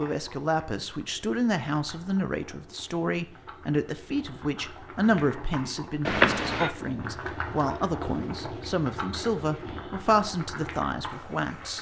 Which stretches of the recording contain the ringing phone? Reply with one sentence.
The ringing phone can be heard from 6.0 to 6.7 s.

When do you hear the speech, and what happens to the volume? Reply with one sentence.
The speech can be heard from 0.0 to 11.7 s, at a steady volume.